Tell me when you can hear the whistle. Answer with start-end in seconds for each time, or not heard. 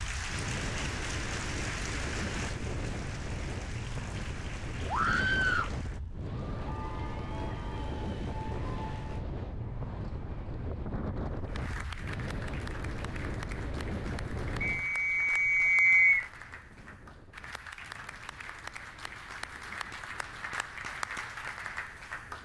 14.6-16.3.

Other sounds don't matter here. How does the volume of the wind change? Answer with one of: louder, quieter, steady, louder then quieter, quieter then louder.
quieter.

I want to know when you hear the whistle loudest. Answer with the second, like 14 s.
16 s.